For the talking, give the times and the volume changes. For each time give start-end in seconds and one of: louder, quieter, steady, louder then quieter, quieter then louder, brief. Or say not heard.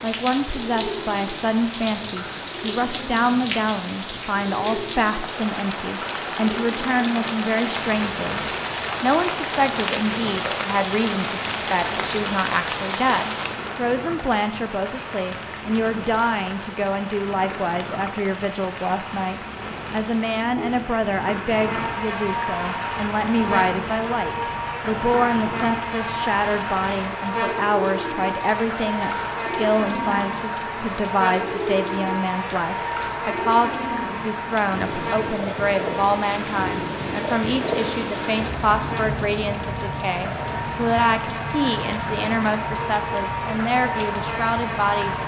0.0-8.4 steady
9.0-45.2 steady.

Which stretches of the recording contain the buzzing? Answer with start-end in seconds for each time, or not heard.
21.5-45.2.